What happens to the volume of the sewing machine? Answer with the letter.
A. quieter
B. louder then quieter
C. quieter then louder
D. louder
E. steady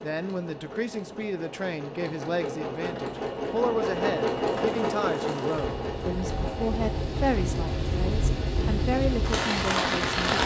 B.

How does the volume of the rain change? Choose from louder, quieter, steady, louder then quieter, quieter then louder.
louder.